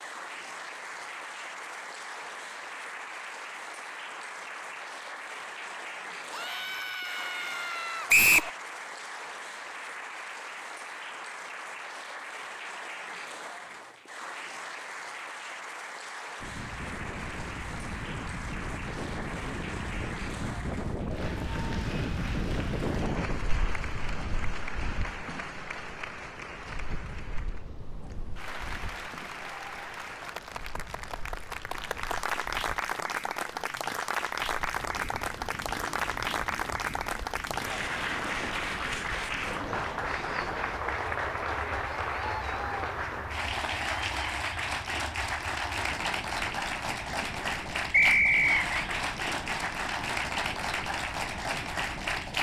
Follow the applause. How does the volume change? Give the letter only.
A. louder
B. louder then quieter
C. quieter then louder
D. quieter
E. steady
A.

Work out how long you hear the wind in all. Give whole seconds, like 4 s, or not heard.
36 s.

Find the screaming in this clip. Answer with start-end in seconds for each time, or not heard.
6.3-8.1, 42.0-42.8.